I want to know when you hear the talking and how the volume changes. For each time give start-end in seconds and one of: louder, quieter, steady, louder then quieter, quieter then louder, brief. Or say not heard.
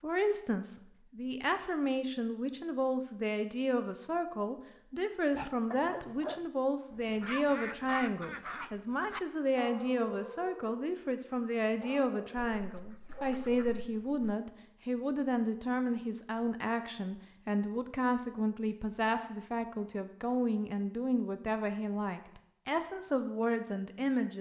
0.0-24.3 steady.